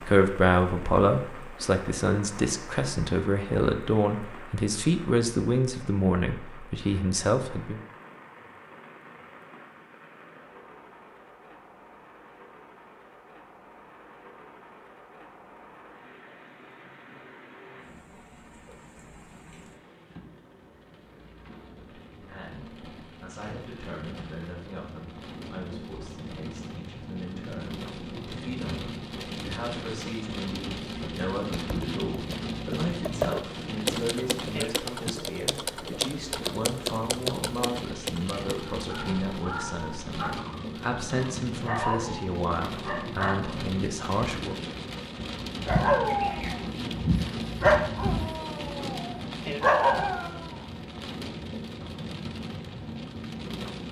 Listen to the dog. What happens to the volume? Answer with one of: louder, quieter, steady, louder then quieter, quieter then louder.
louder.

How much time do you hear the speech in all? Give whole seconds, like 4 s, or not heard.
31 s.